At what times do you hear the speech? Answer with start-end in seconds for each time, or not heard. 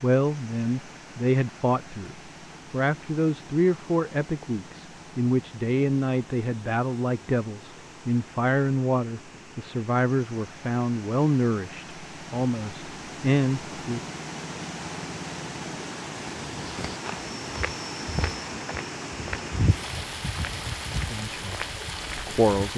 0.0-14.0, 21.1-22.7.